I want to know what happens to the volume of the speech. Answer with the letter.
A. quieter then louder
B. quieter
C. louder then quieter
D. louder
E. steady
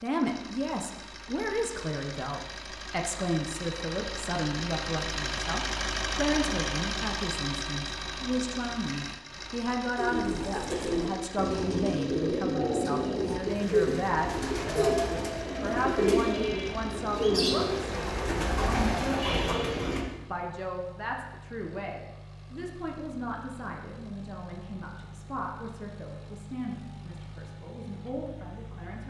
B.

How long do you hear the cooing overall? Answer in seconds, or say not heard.
10 s.